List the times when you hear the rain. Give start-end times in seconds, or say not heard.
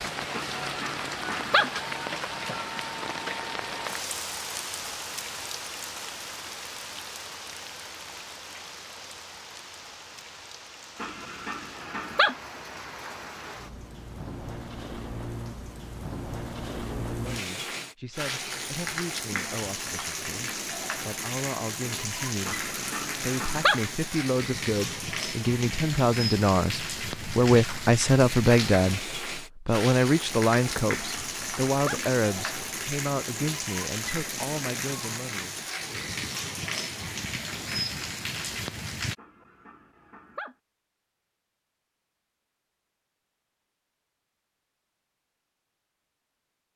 0.0-39.1.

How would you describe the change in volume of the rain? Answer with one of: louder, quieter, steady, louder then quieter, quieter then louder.
quieter then louder.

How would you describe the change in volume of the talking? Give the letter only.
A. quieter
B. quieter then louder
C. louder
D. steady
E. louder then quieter
E.